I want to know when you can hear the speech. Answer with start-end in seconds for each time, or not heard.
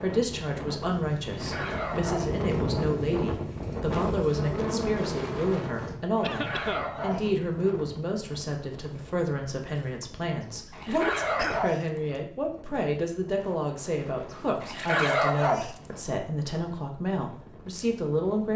0.0-18.5.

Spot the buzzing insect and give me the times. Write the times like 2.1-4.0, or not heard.
4.2-6.0.